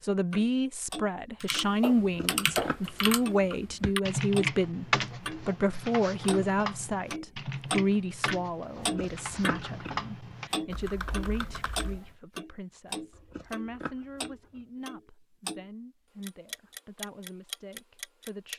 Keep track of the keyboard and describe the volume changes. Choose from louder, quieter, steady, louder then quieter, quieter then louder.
quieter.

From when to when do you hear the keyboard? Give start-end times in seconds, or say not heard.
1.4-12.1.